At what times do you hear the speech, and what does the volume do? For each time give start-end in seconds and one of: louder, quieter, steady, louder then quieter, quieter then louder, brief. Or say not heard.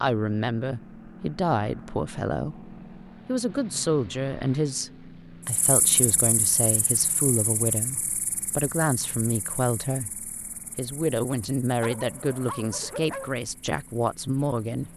0.0-14.9 steady.